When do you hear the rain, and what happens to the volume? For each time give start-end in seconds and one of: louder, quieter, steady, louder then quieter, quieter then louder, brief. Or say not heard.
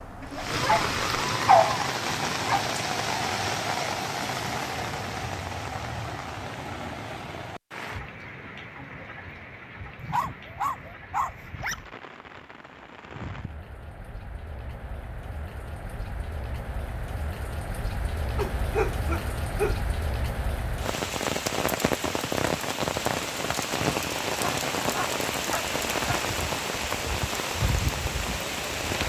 0.0-29.0 quieter then louder.